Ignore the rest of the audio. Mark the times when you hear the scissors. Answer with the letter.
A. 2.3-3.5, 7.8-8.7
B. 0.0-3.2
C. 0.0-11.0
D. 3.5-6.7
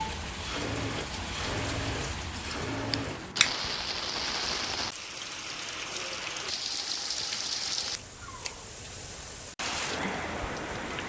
A.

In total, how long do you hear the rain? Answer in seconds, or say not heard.
11 s.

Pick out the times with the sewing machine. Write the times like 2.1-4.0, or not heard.
0.0-3.2.